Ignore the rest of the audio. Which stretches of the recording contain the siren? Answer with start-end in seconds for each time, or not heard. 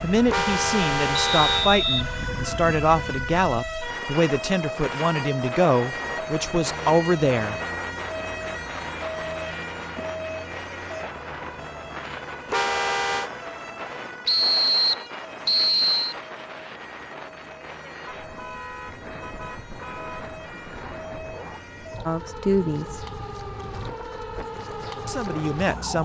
0.0-26.0.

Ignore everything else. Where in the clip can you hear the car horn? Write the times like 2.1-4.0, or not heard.
0.2-1.7, 12.4-13.3, 18.2-20.4.